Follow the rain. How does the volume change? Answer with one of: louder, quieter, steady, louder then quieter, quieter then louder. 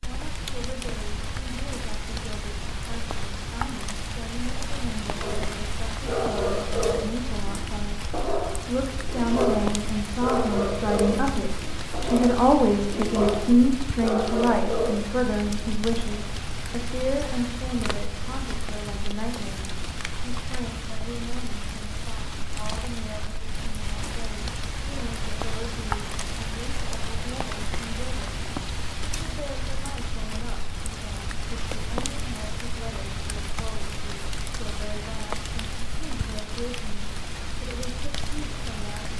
steady.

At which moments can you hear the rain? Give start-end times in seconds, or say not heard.
0.0-39.1.